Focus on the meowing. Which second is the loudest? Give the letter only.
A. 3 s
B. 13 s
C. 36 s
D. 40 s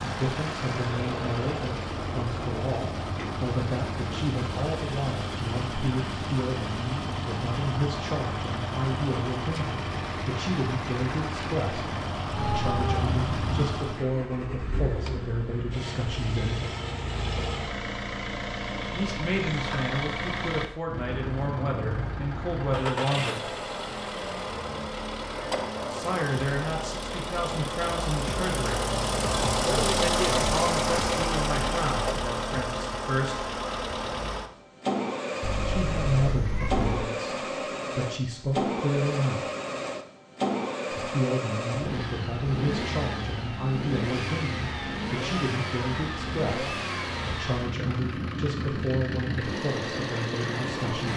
B.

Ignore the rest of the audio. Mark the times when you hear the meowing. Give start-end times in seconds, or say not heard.
12.3-13.7, 35.4-37.0.